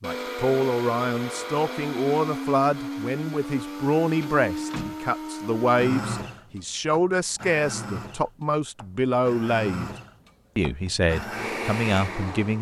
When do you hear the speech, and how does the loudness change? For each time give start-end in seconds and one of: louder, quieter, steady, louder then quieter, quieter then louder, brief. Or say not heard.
0.0-9.9 steady
10.6-12.5 brief.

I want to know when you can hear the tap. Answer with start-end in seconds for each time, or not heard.
not heard.